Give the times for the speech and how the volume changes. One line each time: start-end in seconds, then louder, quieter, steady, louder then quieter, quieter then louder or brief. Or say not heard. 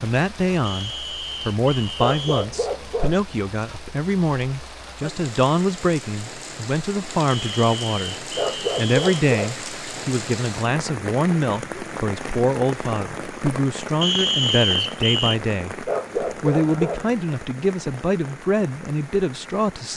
0.0-19.9 steady.